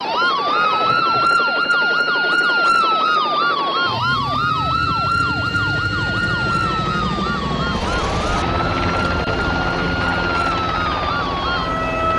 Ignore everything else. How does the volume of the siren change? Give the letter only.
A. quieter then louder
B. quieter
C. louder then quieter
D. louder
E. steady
B.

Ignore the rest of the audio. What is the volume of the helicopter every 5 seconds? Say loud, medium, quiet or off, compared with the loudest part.
medium, loud, loud.